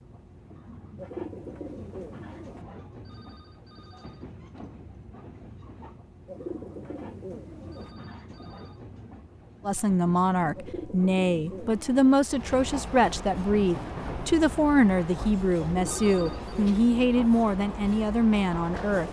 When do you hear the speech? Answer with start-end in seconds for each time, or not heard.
9.7-19.0.